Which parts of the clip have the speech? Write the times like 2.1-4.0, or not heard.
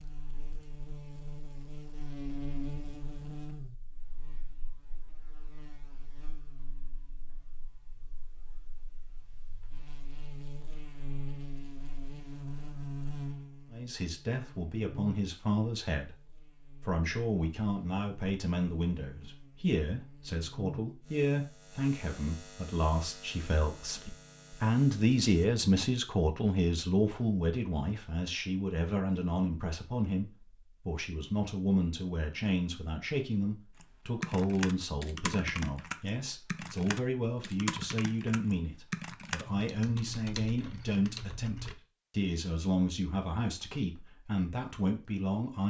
13.7-45.6.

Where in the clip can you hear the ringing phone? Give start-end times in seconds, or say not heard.
not heard.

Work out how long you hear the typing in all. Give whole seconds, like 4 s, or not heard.
8 s.